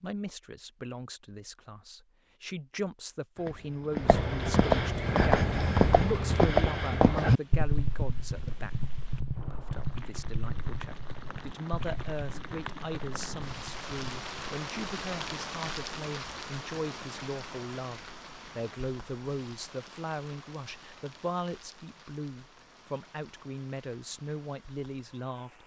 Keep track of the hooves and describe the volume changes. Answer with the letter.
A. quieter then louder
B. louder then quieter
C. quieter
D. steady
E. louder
C.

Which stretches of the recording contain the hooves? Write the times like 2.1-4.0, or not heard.
3.4-14.4.